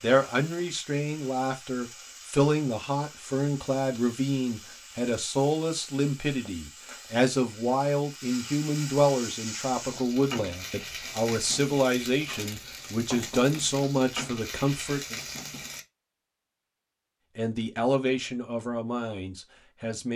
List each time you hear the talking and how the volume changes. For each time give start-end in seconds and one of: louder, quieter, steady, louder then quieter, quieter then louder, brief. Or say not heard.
0.0-15.2 steady
17.4-20.1 brief.